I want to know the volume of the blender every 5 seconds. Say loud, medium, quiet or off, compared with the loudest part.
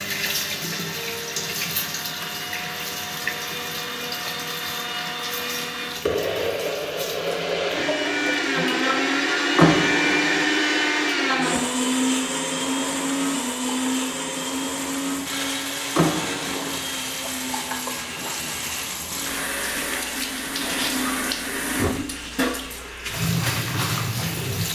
medium, loud, loud, medium, quiet.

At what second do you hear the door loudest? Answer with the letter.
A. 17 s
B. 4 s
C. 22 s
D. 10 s
D.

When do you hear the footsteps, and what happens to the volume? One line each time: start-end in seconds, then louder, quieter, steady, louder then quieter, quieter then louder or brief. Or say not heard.
not heard.